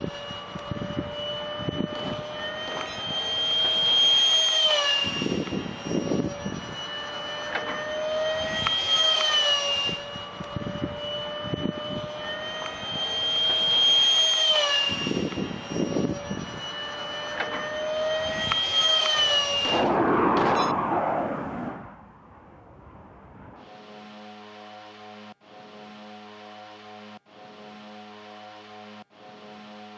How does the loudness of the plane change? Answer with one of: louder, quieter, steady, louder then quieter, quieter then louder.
quieter.